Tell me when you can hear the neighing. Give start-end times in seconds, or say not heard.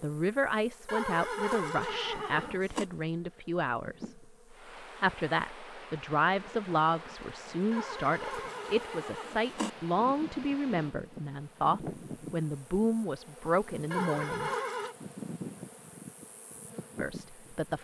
0.8-2.9, 7.7-9.7, 13.9-14.9.